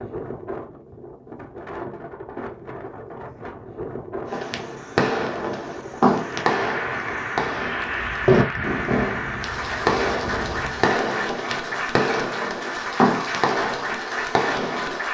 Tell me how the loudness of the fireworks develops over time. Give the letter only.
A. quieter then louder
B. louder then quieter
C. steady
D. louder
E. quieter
C.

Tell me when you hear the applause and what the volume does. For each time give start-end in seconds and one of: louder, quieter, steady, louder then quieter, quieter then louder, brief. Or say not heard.
6.1-15.1 steady.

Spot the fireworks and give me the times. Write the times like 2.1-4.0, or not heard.
4.2-15.0.